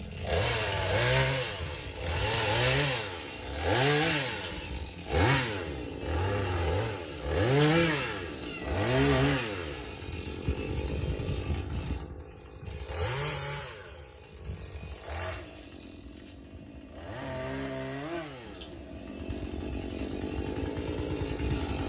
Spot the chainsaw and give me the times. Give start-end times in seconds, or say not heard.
0.0-21.8.